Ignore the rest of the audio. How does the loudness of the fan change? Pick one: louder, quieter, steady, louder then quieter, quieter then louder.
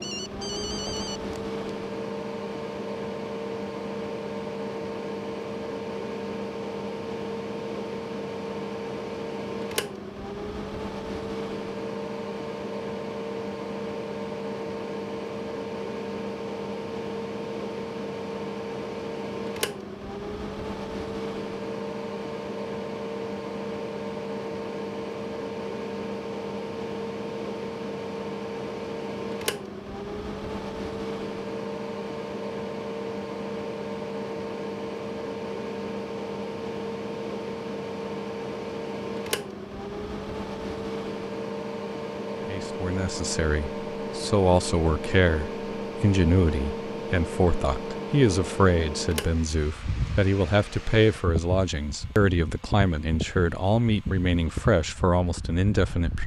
steady.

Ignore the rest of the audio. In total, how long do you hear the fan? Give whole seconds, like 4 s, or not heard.
56 s.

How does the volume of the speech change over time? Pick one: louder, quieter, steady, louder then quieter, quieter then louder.
steady.